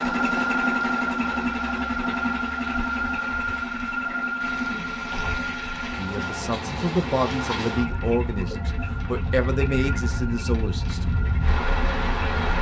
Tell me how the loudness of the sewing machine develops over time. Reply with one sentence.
The loudness of the sewing machine goes down.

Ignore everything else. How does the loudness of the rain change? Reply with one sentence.
The volume of the rain goes up.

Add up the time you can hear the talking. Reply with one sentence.
The talking can be heard for 5 seconds in total.